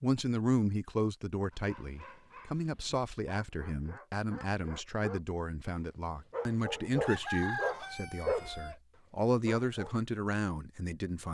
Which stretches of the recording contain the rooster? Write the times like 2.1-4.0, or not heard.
7.0-8.8.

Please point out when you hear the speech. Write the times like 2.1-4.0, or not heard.
0.0-11.2.